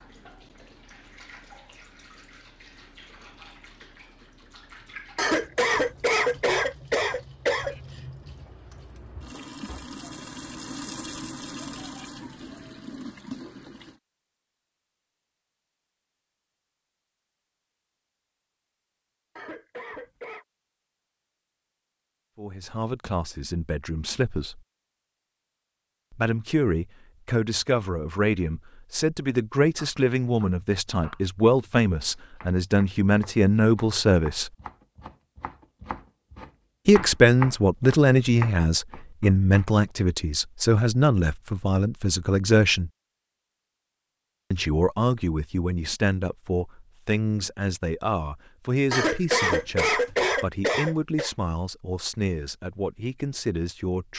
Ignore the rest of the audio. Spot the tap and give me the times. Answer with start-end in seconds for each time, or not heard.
0.0-14.0.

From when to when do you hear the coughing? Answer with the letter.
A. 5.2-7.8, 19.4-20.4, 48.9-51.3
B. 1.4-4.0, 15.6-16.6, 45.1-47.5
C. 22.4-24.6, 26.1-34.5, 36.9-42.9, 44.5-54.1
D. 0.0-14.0
A.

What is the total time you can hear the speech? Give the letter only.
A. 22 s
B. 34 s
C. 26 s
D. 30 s
C.